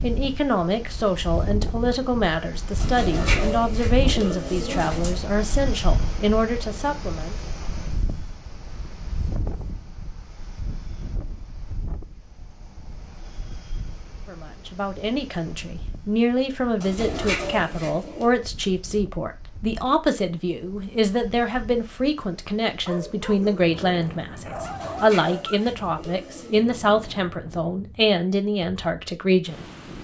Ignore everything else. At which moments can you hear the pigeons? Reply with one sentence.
You can hear the pigeons from 2.8 to 5.2 s, from 16.8 to 18.3 s and from 24.6 to 26.6 s.